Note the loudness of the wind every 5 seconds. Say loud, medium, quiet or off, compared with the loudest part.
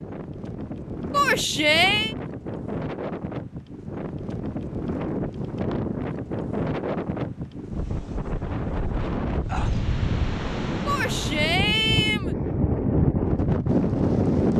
medium, medium, loud.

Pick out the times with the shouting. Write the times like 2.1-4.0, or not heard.
1.1-2.1, 10.8-12.3.